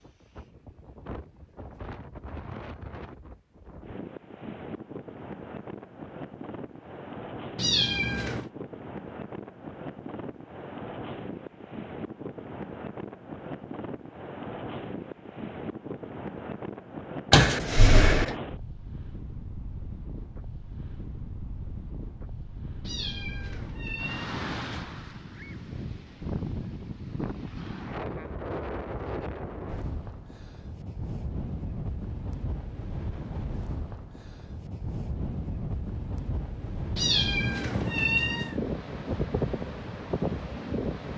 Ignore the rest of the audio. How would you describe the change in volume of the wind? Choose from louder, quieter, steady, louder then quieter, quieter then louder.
louder.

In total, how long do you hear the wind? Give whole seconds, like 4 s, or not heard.
41 s.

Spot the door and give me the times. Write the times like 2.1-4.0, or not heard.
17.3-18.4.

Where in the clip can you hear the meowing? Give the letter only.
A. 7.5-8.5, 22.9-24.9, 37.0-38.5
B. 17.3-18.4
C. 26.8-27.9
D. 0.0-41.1
A.